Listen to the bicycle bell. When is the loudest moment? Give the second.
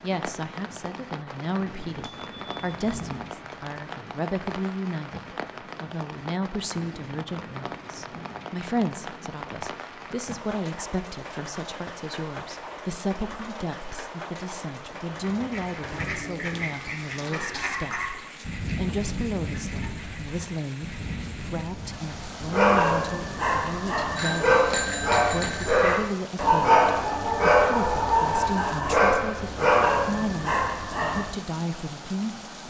25 s.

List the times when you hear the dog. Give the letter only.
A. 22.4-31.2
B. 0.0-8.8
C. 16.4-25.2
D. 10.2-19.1
A.